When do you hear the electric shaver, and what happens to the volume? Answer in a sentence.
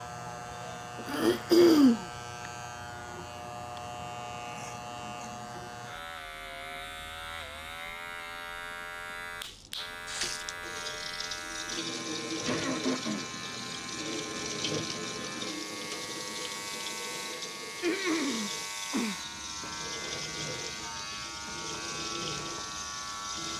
The electric shaver can be heard from 0.0 to 23.5 s, at a steady volume.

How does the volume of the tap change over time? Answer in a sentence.
The loudness of the tap stays about the same.